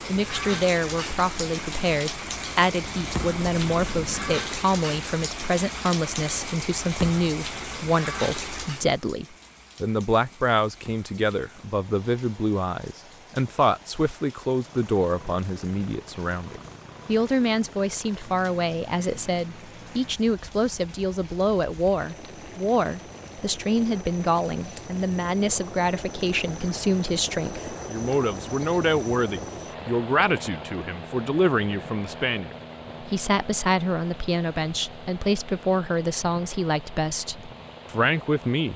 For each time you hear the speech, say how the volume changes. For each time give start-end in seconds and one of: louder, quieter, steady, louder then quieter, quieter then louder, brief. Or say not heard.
0.1-38.7 steady.